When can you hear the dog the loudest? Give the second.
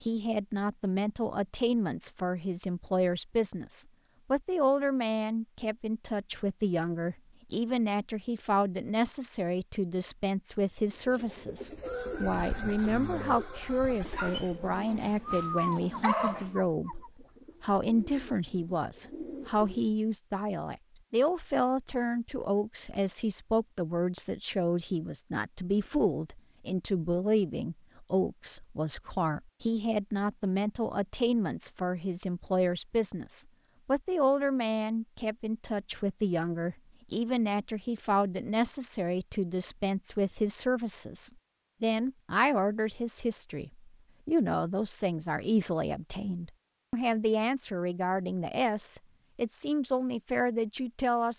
16 s.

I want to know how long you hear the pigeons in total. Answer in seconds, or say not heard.
9 s.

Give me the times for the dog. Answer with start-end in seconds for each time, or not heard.
14.2-16.6.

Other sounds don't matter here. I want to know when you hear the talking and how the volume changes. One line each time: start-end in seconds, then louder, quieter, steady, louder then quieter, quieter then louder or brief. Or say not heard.
0.0-51.3 steady.